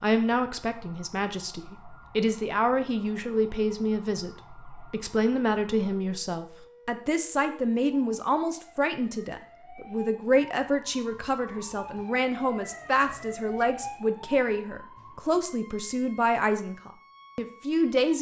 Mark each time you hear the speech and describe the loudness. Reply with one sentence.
You can hear the speech from 0.0 to 18.1 s, at a steady volume.